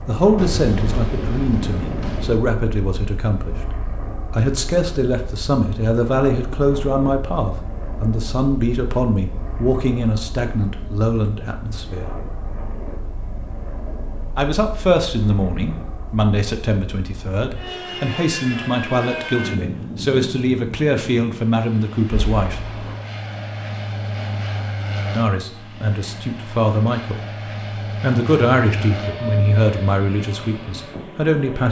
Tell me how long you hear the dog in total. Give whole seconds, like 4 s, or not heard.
not heard.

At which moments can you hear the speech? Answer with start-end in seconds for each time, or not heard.
0.1-3.5, 4.3-12.2, 14.3-22.7, 25.1-27.2, 27.9-31.6.